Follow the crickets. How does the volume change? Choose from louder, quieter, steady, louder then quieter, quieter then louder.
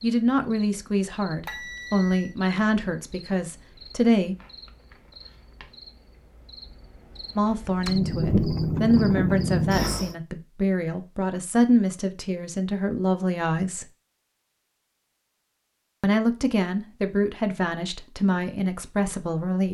louder.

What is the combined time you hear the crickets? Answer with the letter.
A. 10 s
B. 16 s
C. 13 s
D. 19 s
A.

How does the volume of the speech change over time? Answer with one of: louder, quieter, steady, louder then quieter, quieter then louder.
steady.